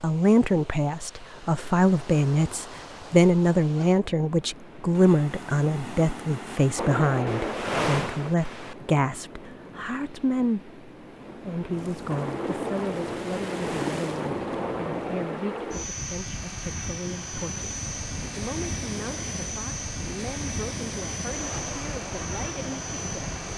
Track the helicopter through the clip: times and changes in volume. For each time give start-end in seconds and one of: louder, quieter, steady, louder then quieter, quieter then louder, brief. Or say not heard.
6.8-8.3 brief
12.1-23.5 steady.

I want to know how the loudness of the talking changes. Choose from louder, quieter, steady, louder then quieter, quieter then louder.
quieter.